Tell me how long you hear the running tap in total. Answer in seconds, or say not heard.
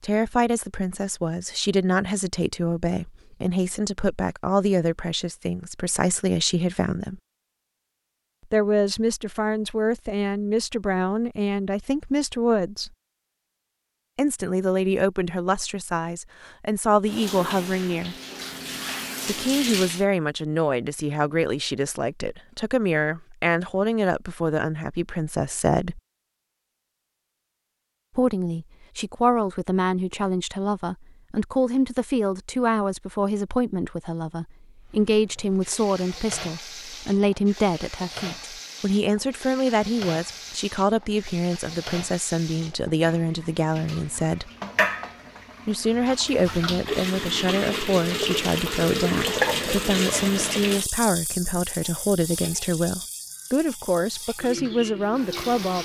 24 s.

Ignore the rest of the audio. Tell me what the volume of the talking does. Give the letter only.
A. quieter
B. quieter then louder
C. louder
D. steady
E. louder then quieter
D.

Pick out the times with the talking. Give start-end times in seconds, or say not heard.
0.0-7.2, 8.5-12.9, 14.2-18.1, 19.2-26.0, 28.1-44.5, 45.6-55.8.